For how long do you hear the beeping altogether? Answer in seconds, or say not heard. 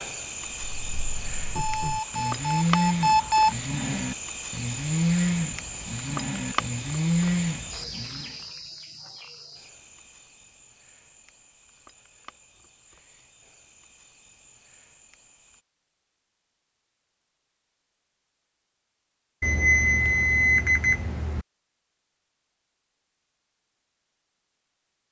4 s.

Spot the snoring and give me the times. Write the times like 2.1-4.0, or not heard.
0.8-8.3.